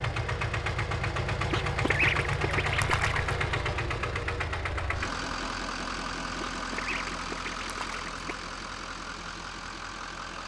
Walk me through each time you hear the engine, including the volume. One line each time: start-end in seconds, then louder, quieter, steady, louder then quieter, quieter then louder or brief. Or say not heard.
0.0-10.4 quieter.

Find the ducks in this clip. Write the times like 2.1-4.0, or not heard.
1.5-3.4, 6.3-8.3.